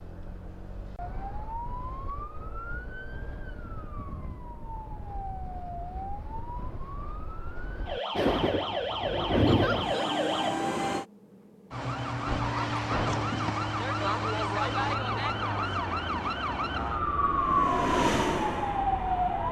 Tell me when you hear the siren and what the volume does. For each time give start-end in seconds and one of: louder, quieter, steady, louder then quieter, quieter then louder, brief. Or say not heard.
0.0-19.4 louder.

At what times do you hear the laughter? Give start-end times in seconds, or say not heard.
9.4-10.1.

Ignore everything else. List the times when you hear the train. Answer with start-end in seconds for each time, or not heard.
8.2-11.1, 14.7-19.4.